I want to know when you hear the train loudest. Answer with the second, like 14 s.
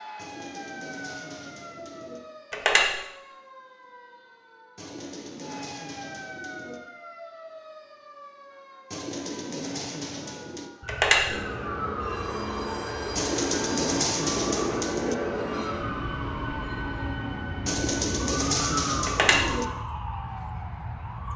15 s.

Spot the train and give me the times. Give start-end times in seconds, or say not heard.
11.2-19.8.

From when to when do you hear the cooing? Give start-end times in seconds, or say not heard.
0.1-2.2, 4.8-6.8, 8.9-10.7, 13.2-15.2, 17.6-19.6.